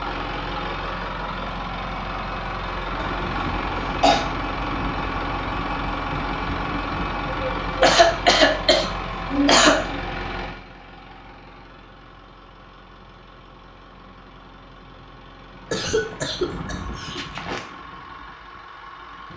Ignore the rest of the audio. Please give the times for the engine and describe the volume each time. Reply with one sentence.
You can hear the engine from 0.0 to 19.3 s, getting quieter then louder.